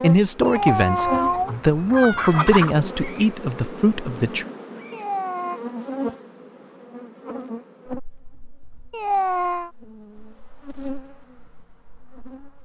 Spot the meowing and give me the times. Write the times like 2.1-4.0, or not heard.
0.5-2.5, 4.9-5.6, 8.9-9.7.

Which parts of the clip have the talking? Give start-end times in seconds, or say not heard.
0.0-4.5.